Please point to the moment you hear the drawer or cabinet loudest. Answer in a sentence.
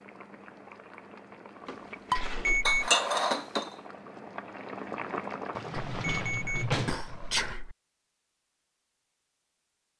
The loudest moment of the drawer or cabinet is at 7 seconds.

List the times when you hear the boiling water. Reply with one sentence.
The boiling water can be heard from 0.0 to 7.5 s.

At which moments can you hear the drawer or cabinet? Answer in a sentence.
The drawer or cabinet can be heard from 1.6 to 2.6 s and from 5.5 to 7.1 s.